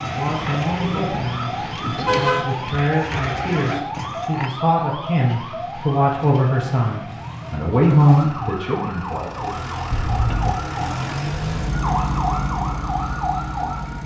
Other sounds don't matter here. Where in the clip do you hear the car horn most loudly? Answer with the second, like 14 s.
2 s.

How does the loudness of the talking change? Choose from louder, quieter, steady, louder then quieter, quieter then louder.
louder.